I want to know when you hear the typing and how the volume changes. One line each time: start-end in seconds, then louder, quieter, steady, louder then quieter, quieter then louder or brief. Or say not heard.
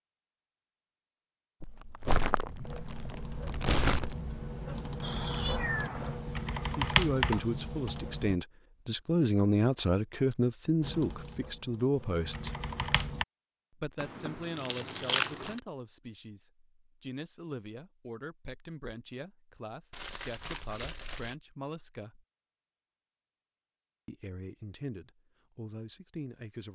2.6-8.4 louder
10.8-13.2 brief.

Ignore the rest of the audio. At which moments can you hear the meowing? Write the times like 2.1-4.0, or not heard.
5.0-6.2.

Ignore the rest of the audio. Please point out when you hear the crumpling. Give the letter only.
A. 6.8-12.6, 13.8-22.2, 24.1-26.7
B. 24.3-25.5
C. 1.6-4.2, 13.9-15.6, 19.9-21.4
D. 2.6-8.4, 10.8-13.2
C.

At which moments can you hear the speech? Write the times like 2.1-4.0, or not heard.
6.8-12.6, 13.8-22.2, 24.1-26.7.